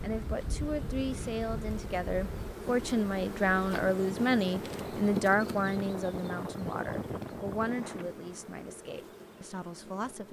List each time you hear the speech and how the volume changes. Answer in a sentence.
You can hear the speech from 0.0 to 10.2 s, getting louder then quieter.